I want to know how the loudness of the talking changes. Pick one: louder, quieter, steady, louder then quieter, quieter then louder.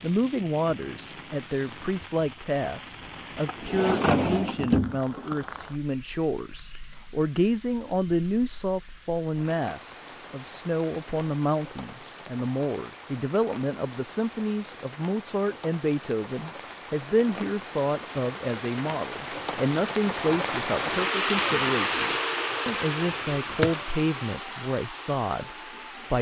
steady.